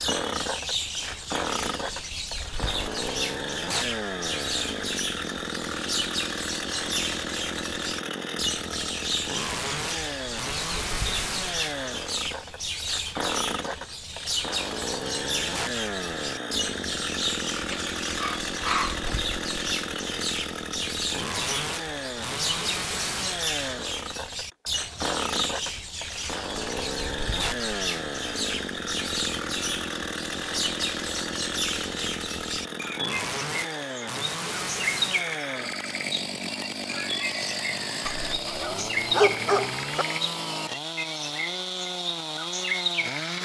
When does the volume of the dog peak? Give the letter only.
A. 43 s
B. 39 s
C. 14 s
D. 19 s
B.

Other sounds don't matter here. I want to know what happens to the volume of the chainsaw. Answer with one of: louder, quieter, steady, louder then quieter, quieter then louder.
steady.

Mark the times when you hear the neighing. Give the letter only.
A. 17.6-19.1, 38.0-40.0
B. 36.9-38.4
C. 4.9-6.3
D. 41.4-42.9
B.